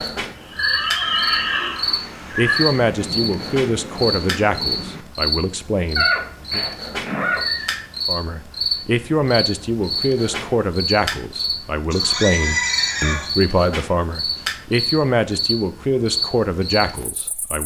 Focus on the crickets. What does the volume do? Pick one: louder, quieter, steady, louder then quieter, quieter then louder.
steady.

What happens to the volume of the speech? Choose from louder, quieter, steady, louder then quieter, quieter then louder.
steady.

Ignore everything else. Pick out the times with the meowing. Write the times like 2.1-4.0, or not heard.
not heard.